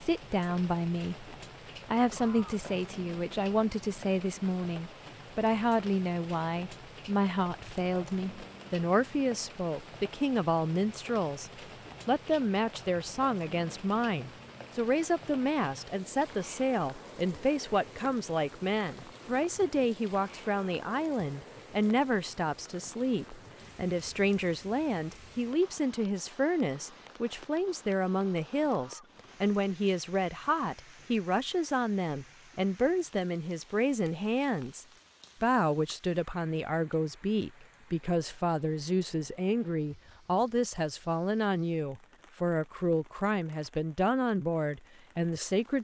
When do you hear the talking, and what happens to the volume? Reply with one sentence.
You can hear the talking from 0.0 to 45.7 s, at a steady volume.